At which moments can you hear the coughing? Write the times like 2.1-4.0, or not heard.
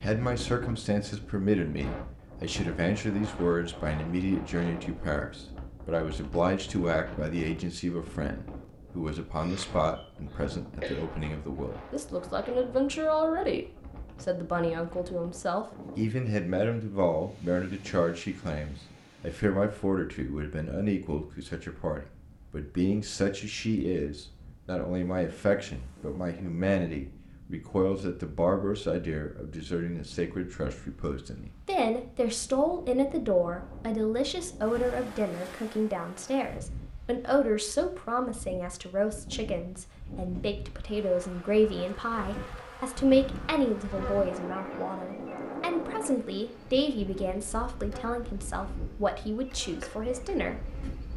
9.3-11.1.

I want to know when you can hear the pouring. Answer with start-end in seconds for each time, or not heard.
not heard.